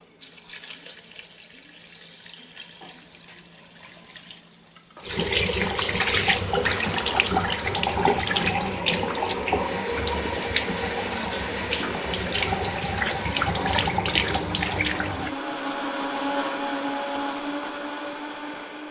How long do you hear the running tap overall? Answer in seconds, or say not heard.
15 s.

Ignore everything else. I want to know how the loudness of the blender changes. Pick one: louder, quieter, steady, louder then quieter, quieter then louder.
louder.